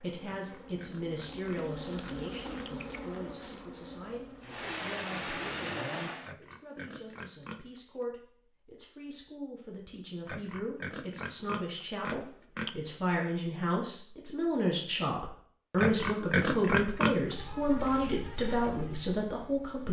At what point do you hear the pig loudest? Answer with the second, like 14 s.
17 s.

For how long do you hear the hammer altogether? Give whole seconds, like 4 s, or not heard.
not heard.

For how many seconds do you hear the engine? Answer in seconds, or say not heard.
2 s.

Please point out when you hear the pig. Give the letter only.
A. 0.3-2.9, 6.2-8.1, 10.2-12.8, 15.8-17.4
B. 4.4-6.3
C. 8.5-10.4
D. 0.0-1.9
A.